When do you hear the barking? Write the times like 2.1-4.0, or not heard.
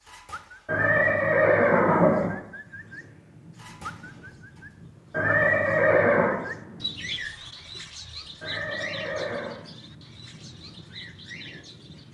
not heard.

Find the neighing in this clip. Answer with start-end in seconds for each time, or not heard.
0.7-2.4, 5.1-6.4, 8.4-9.6.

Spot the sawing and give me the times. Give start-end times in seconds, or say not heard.
not heard.